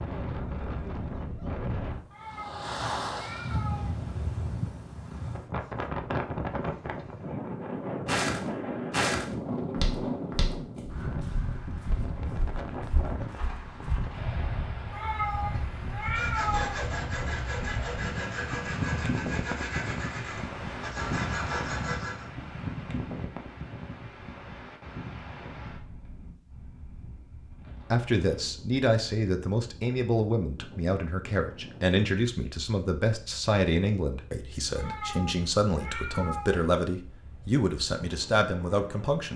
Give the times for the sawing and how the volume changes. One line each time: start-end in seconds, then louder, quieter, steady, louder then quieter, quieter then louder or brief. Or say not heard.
16.0-22.2 steady.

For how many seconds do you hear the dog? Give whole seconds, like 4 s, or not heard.
not heard.